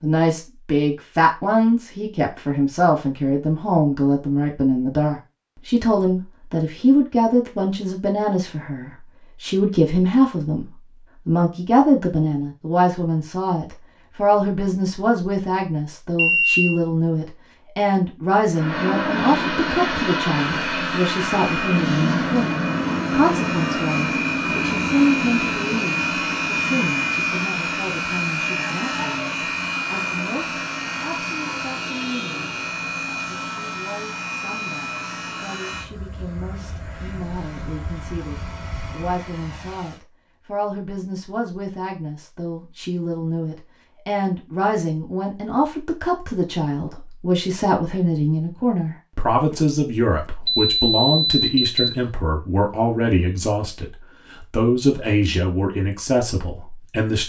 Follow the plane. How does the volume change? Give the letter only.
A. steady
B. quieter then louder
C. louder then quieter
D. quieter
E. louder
D.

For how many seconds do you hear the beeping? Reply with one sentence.
The beeping can be heard for 2 seconds in total.